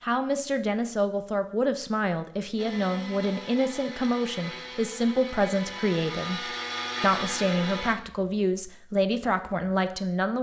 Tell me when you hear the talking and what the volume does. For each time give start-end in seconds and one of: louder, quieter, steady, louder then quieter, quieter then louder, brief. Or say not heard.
0.0-10.3 steady.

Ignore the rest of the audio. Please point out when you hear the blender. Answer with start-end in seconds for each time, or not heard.
2.5-8.0.